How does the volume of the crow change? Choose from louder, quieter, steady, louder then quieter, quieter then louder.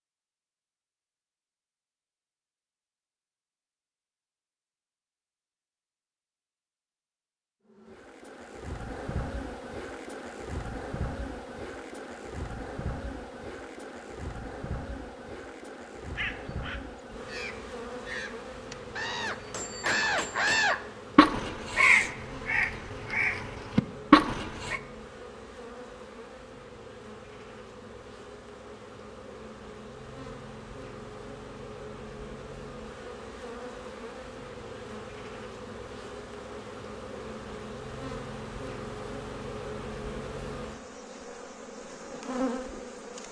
louder.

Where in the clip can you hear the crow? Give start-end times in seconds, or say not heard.
16.1-24.8.